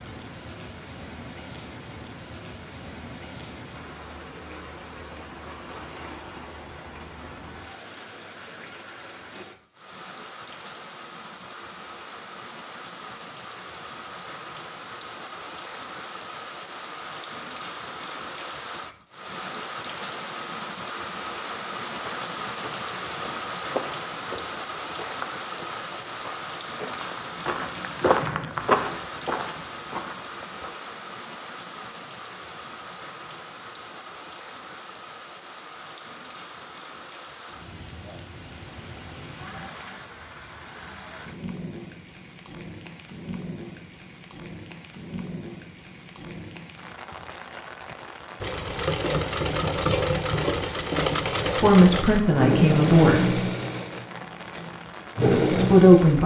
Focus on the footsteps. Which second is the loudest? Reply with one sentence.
The volume of the footsteps peaks at 29 seconds.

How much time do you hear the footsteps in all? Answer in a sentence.
The footsteps can be heard for 9 seconds in total.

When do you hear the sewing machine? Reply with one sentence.
The sewing machine can be heard from 48.4 to 56.2 s.